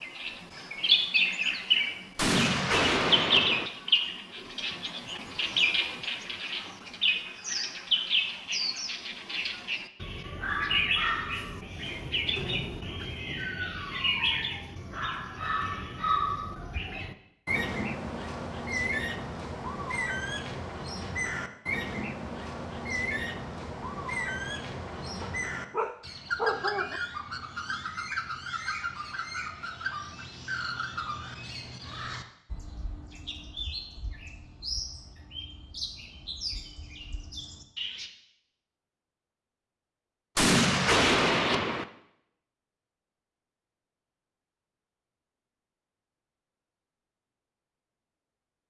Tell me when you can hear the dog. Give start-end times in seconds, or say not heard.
25.2-27.0.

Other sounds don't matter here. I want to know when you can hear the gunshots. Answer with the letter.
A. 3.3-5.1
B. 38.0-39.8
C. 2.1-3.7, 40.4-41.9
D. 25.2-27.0
C.